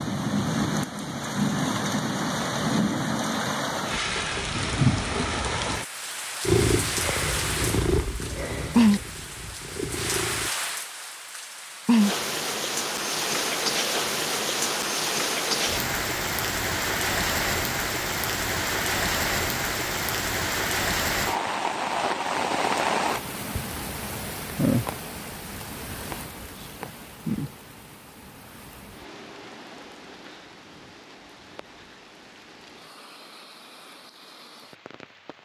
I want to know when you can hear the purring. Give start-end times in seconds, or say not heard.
6.5-10.6.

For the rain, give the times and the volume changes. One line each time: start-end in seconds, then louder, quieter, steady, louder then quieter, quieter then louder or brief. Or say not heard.
0.0-35.4 quieter.